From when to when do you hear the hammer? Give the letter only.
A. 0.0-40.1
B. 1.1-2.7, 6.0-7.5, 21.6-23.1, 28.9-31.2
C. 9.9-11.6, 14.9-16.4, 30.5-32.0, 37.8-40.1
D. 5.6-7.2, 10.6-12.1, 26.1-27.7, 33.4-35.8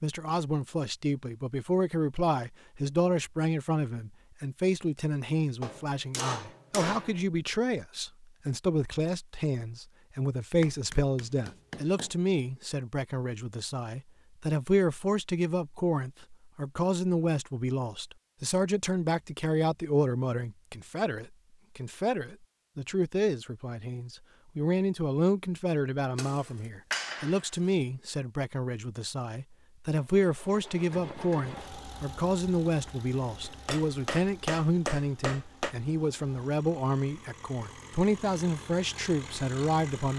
D.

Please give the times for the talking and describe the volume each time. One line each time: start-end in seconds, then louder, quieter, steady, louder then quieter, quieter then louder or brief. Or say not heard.
0.0-40.1 steady.